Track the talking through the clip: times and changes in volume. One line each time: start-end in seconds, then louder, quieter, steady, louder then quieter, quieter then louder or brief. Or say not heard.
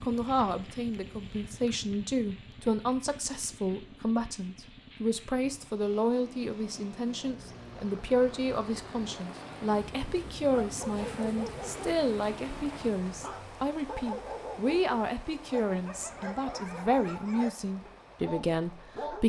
0.0-19.2 steady.